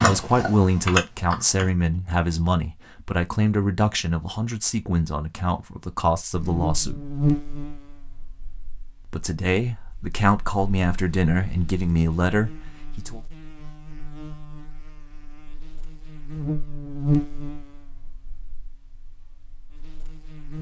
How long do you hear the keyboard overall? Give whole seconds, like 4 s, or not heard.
2 s.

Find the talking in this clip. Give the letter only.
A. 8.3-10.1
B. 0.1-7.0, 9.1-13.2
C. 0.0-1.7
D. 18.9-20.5
B.